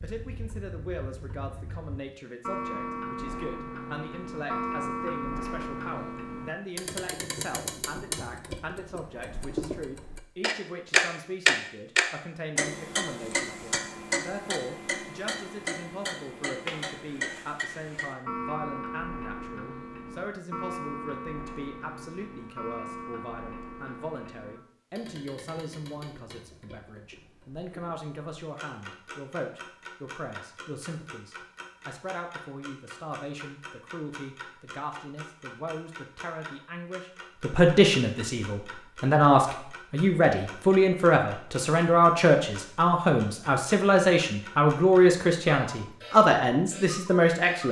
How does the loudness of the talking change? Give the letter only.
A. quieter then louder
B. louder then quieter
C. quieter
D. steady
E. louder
E.